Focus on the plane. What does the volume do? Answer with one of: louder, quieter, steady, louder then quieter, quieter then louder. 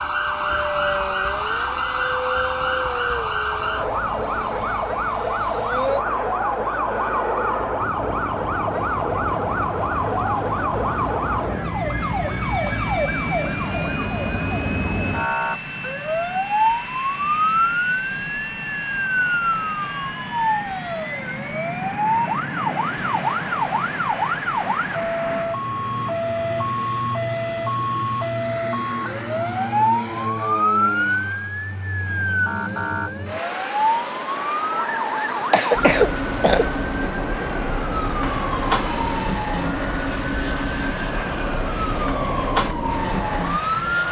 steady.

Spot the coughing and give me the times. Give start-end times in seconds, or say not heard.
35.5-36.7.